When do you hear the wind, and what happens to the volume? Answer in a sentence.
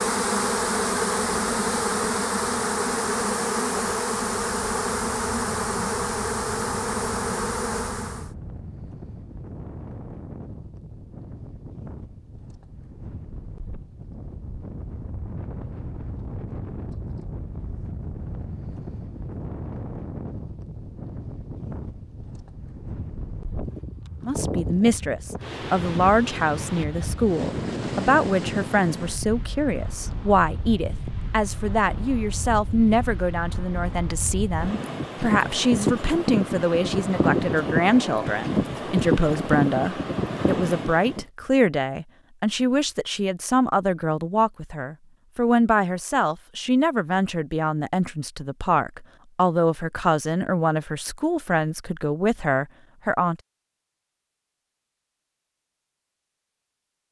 The wind can be heard from 0.0 to 41.2 s, getting louder.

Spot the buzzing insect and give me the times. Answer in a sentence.
The buzzing insect can be heard from 0.0 to 8.3 s.